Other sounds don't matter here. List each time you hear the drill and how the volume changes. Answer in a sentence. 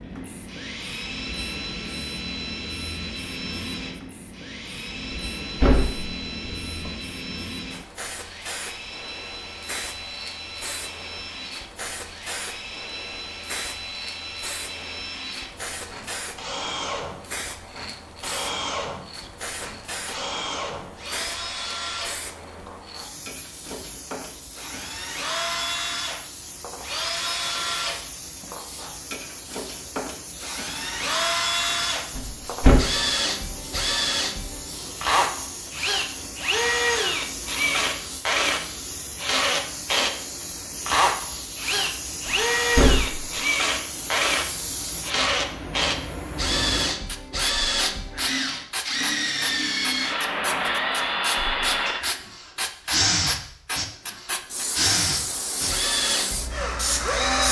You can hear the drill from 0.0 to 57.4 s, getting louder.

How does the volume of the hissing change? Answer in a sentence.
The loudness of the hissing goes up.